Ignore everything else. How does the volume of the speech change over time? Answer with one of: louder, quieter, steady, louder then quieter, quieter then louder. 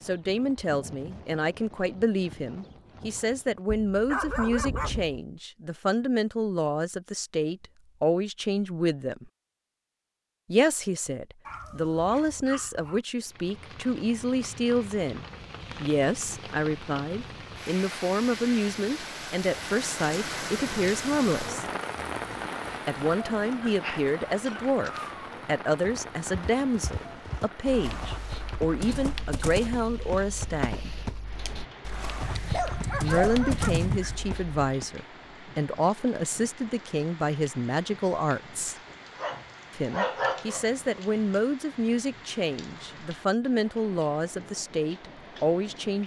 steady.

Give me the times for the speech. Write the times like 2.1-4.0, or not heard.
0.0-9.3, 10.5-21.6, 22.9-30.9, 33.0-38.8, 39.8-46.0.